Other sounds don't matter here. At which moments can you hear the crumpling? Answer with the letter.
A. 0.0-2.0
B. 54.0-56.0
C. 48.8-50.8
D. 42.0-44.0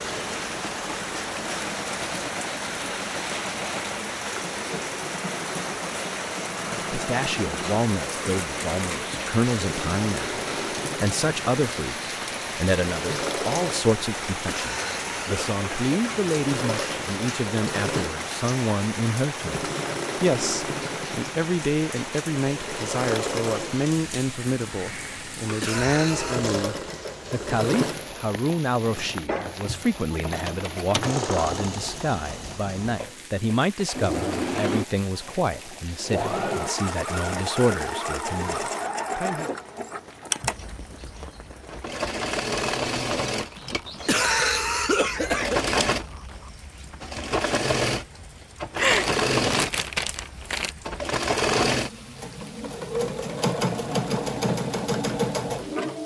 C.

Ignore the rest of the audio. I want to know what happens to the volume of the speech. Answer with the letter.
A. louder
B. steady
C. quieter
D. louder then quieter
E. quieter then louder
B.